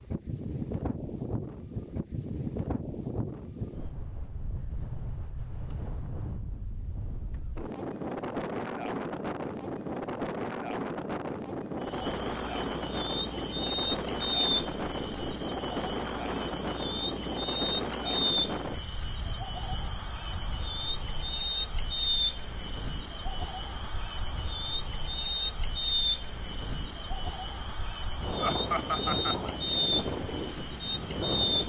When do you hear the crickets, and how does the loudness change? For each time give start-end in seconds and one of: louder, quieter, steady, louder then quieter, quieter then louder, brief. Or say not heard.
11.8-31.6 steady.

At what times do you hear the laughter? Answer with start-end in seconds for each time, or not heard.
28.4-29.5.